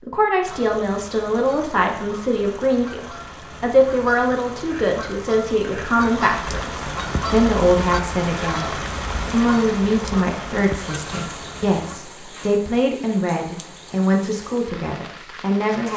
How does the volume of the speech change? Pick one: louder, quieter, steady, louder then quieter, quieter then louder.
steady.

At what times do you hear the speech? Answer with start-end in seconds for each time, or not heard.
0.0-15.9.